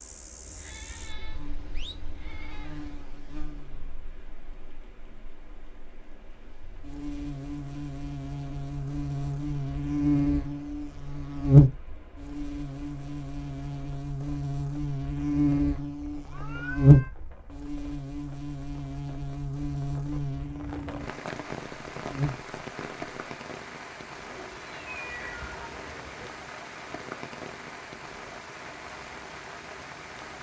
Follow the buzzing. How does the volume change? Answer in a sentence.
The volume of the buzzing goes up, then down.